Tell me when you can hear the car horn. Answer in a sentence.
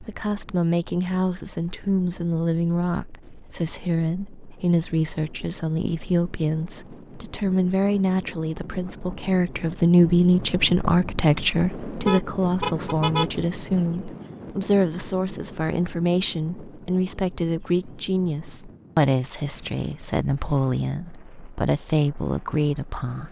You can hear the car horn from 12.1 to 13.3 s.